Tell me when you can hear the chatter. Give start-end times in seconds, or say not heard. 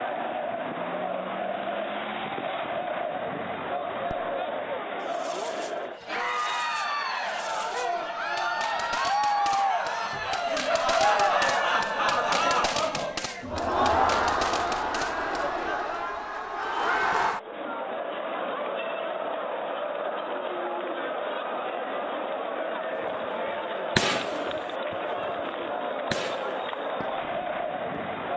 0.0-28.3.